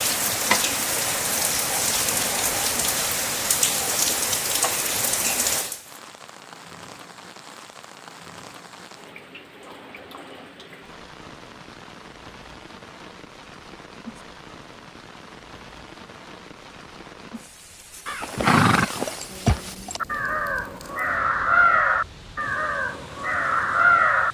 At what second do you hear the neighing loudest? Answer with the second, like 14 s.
19 s.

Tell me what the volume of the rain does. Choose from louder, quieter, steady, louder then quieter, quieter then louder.
quieter.